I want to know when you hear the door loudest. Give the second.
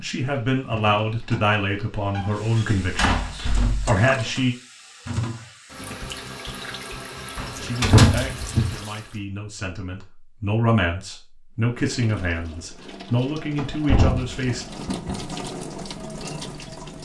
8 s.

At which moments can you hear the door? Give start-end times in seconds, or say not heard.
2.1-3.8, 7.3-8.8, 13.6-15.2.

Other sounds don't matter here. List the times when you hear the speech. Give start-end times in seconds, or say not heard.
0.0-4.5, 7.6-14.7.